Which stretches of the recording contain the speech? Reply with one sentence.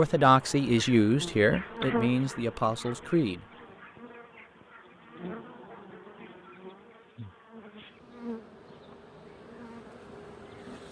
You can hear the speech from 0.0 to 3.4 s.